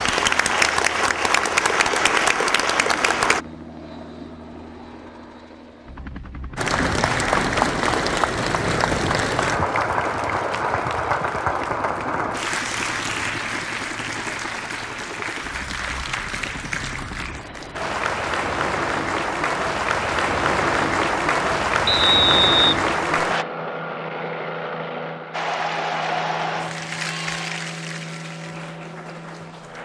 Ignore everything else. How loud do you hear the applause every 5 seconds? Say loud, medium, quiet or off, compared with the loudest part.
loud, loud, medium, medium, loud, medium.